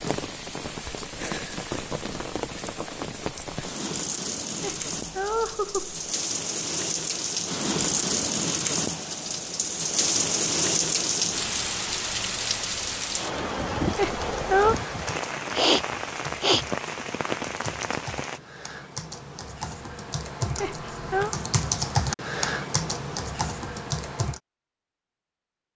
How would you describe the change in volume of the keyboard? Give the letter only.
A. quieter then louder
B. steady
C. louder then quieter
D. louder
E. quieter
D.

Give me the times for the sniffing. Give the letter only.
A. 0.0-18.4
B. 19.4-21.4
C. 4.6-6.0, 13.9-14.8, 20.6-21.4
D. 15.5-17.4
D.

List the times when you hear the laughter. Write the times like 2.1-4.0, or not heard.
4.6-6.0, 13.9-14.8, 20.6-21.4.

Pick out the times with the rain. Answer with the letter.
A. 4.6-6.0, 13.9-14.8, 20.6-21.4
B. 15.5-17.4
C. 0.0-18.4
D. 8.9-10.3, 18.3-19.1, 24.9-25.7
C.